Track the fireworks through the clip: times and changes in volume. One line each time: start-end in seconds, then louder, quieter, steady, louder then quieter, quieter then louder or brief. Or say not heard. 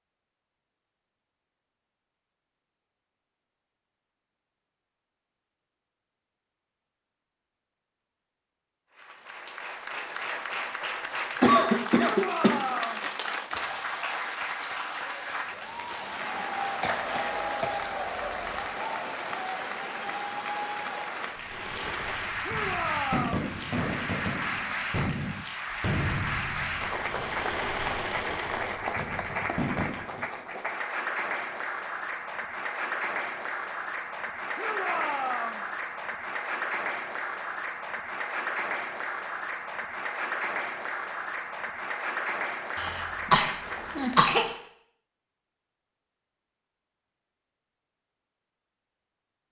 21.4-30.3 steady.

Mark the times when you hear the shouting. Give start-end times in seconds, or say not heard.
12.1-13.1, 22.4-23.5, 34.5-35.6.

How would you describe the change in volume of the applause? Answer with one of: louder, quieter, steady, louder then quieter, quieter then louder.
steady.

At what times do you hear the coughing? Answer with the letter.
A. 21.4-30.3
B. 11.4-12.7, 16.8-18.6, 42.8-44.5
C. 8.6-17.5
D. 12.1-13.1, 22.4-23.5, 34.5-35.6
B.